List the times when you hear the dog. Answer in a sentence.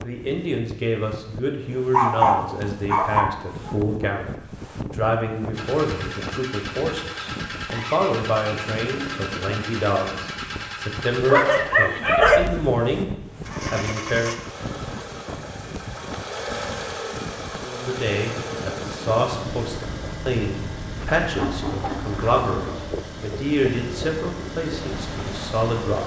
You can hear the dog from 1.9 to 3.8 s, from 11.2 to 12.5 s and from 21.3 to 22.8 s.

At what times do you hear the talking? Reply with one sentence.
The talking can be heard from 0.0 to 13.1 s, from 13.7 to 14.4 s and from 17.6 to 26.0 s.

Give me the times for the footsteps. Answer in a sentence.
The footsteps can't be heard in this clip.